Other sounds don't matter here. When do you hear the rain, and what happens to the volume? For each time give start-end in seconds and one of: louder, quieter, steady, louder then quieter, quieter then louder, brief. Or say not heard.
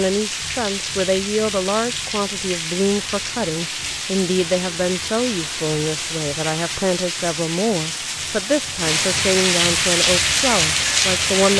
0.0-11.5 louder.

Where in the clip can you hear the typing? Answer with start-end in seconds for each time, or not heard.
not heard.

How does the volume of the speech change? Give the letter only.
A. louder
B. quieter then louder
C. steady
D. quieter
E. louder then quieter
C.